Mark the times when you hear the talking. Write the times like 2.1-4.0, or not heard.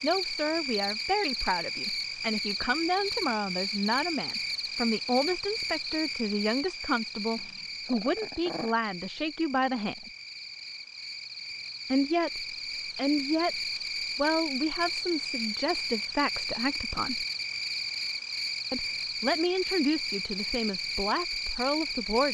0.0-10.1, 11.9-17.2, 18.7-22.2.